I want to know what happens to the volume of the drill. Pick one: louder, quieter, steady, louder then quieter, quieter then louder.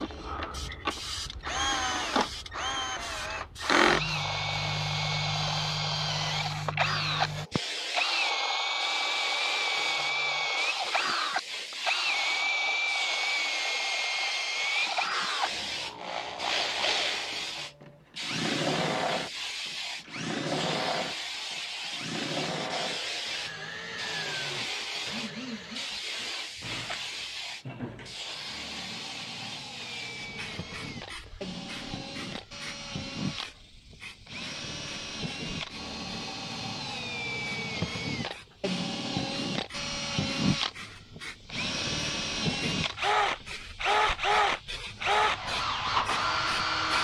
quieter then louder.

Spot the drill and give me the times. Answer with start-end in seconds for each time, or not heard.
0.0-46.9.